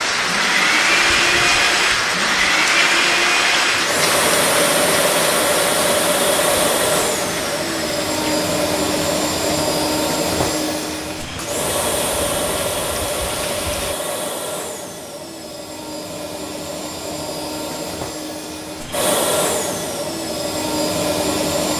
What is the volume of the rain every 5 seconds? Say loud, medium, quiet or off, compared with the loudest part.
loud, medium, quiet, off, off.